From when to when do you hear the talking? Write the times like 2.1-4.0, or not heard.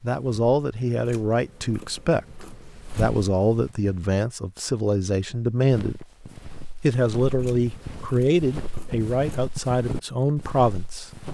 0.0-6.0, 6.8-11.1.